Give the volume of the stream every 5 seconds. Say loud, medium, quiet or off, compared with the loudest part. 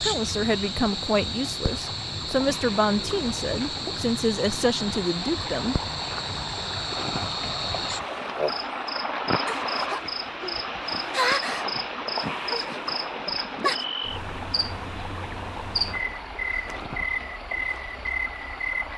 medium, loud, loud, medium.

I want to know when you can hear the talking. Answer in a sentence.
You can hear the talking from 0.0 to 5.8 s.